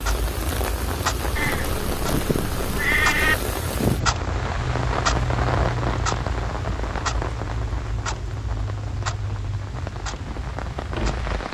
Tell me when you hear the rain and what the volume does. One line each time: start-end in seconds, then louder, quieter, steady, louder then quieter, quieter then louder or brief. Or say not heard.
0.0-11.4 quieter.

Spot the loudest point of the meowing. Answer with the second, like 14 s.
3 s.